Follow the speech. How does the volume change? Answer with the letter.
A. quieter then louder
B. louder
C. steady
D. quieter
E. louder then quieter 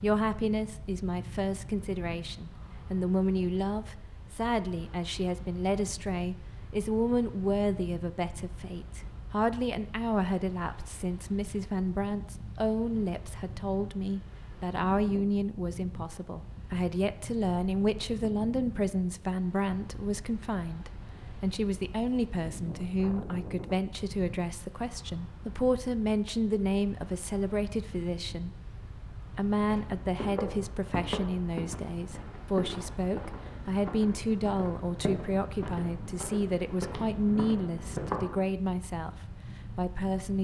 C.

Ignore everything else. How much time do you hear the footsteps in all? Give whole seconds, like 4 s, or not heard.
9 s.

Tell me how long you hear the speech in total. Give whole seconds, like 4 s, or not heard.
40 s.